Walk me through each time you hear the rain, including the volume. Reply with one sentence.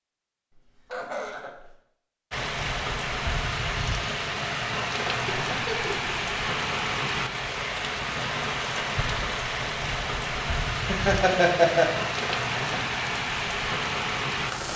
The rain can be heard from 2.3 to 14.7 s, at a steady volume.